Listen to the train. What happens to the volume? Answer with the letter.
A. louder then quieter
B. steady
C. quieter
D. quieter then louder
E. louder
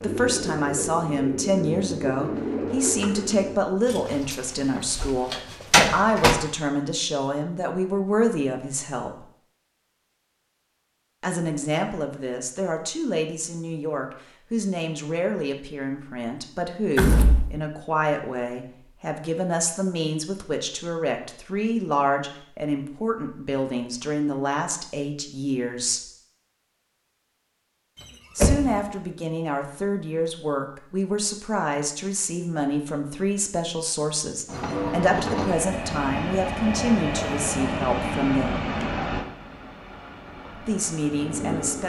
C.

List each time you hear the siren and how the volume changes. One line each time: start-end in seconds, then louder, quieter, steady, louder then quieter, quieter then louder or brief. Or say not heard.
not heard.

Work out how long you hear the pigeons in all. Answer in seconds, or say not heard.
5 s.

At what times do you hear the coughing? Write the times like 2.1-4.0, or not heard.
not heard.